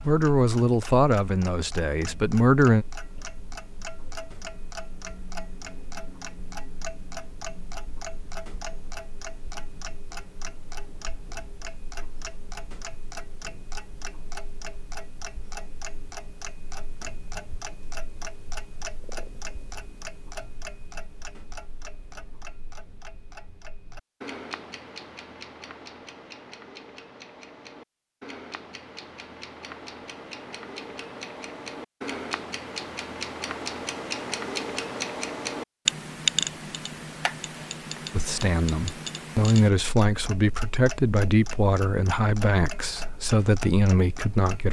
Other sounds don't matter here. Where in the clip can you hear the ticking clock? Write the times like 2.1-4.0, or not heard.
0.0-44.6.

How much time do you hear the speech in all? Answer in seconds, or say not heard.
9 s.